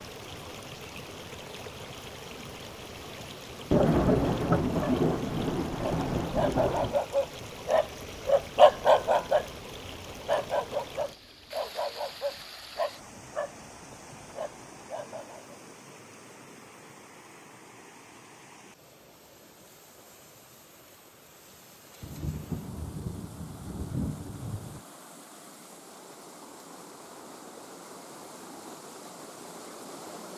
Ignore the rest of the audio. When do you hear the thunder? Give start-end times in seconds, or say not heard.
3.7-7.0, 22.0-24.9.